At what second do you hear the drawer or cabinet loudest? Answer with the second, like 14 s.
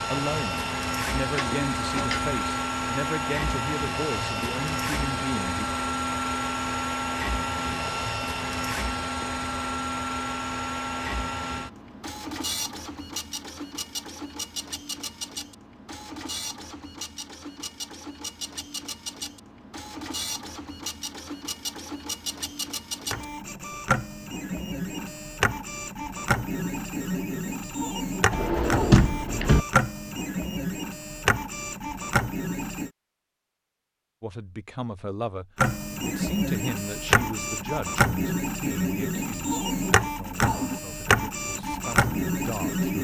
29 s.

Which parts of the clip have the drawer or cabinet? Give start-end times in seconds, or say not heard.
1.4-2.4, 28.3-29.6.